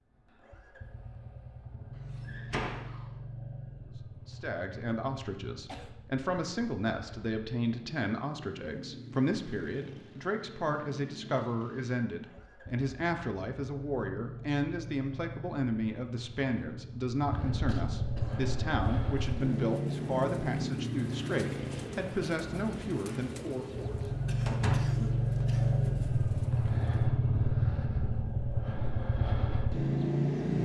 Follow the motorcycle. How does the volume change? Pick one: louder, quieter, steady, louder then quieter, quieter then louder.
louder.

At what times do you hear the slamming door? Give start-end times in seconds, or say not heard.
2.2-3.0, 24.4-25.0.